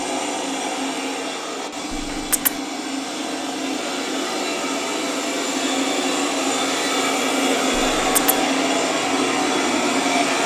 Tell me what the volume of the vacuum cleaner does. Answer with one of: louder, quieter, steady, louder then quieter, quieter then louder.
louder.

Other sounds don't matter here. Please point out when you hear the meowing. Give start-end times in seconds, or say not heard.
1.9-2.6, 7.7-8.4.